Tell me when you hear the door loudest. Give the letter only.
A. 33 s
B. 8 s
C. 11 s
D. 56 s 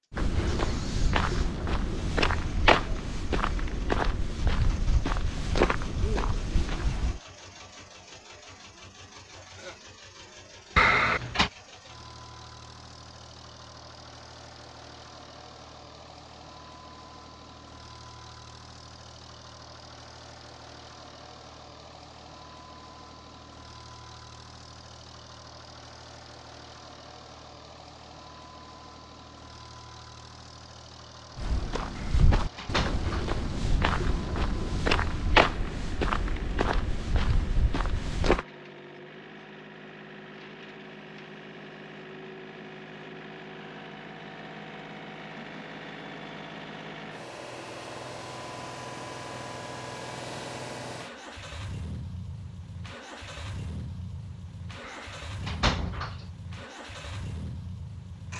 C.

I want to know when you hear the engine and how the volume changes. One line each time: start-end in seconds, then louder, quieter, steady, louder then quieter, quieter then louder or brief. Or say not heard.
0.0-58.3 louder.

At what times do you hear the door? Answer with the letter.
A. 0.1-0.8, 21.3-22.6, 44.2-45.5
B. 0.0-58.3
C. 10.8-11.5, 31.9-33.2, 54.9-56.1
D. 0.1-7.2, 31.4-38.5
C.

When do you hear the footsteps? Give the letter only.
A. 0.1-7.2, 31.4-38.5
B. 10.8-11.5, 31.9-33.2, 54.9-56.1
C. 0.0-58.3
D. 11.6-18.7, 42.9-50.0
A.